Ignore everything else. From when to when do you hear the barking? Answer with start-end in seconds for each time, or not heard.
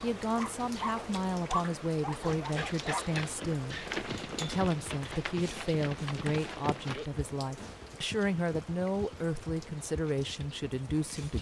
0.0-3.0.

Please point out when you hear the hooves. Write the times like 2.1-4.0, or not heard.
2.2-11.3.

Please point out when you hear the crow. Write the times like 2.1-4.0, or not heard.
not heard.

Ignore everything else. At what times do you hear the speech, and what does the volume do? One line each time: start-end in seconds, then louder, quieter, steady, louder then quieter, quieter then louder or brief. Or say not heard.
0.0-11.3 steady.